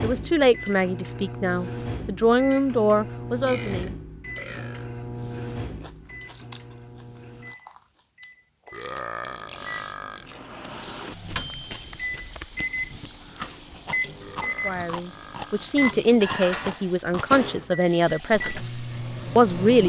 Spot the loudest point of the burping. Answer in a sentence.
The loudest moment of the burping is at 9 seconds.